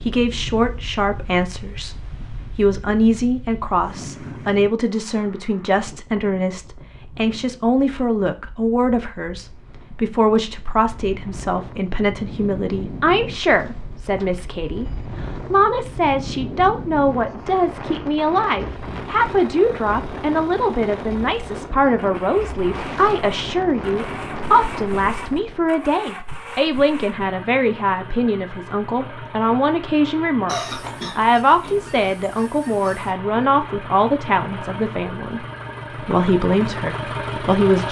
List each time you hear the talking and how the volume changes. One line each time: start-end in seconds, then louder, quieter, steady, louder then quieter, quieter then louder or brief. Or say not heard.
0.1-35.5 steady
36.0-37.8 brief.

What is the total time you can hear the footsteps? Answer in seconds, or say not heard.
not heard.